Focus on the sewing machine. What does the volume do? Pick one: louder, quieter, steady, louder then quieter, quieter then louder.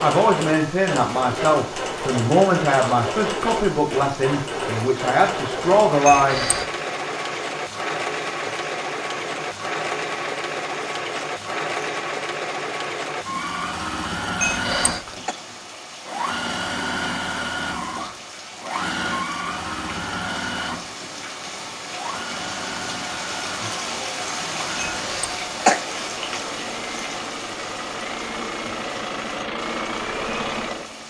steady.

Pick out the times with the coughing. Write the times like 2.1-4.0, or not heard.
6.0-6.8, 14.4-15.3, 25.0-25.8.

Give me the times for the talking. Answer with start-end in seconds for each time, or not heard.
0.0-6.5.